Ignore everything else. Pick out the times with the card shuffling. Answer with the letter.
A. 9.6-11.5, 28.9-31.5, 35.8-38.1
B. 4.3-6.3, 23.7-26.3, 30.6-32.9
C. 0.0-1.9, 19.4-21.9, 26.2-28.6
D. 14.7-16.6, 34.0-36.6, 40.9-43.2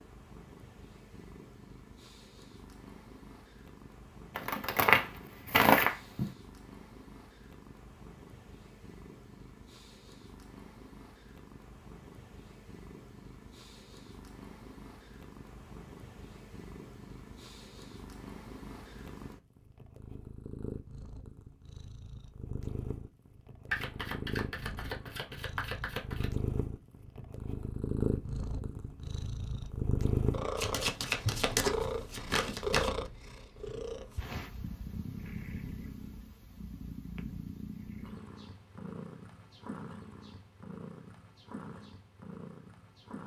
B.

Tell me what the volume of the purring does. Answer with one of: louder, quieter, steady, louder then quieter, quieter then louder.
louder then quieter.